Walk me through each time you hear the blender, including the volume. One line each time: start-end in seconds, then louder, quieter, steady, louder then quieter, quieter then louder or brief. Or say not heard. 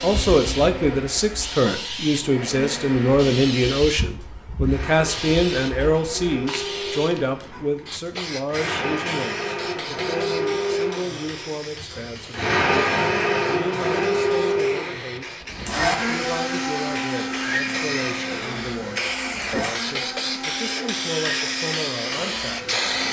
0.0-23.0 louder then quieter.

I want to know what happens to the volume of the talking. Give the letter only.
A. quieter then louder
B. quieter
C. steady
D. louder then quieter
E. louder
B.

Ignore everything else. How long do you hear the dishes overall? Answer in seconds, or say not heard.
not heard.